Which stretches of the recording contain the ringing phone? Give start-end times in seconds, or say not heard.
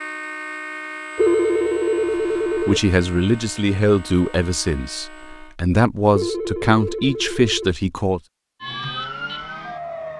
1.1-2.8, 6.1-7.8.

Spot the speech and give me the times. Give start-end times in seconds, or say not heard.
2.5-8.2.